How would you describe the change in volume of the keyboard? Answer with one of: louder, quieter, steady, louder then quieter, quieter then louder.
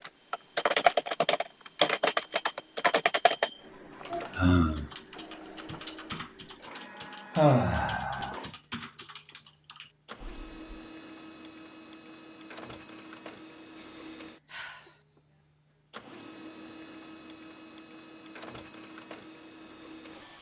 quieter.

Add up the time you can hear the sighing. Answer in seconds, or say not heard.
3 s.